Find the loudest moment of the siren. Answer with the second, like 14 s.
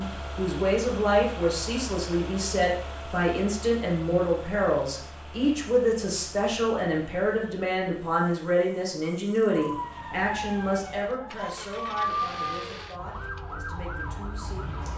12 s.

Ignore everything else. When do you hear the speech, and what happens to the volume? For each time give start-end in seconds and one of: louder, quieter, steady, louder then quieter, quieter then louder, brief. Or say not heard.
0.0-14.9 quieter.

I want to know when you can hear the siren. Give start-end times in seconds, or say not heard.
9.5-14.9.